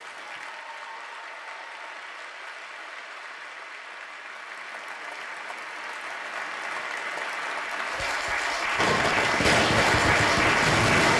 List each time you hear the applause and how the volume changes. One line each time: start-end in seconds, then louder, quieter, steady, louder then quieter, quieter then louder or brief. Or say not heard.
0.0-11.1 louder.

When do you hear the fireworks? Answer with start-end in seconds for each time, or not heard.
8.8-11.1.